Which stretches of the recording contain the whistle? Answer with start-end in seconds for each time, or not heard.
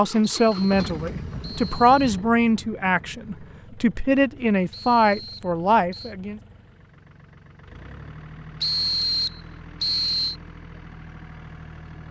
0.5-2.0, 4.7-6.2, 8.6-10.3.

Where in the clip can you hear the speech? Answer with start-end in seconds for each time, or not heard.
0.0-6.4.